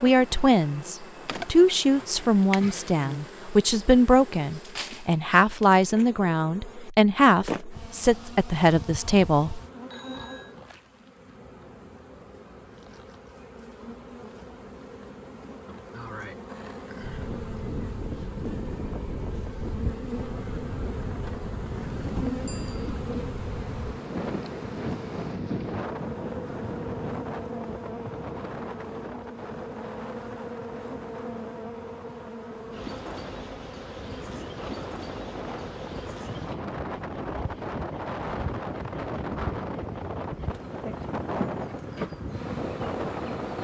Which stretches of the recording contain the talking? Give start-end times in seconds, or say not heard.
0.0-9.6.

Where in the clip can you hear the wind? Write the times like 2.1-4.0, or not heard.
16.9-43.5.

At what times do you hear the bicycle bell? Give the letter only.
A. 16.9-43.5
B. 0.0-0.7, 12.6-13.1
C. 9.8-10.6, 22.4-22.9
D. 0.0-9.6
C.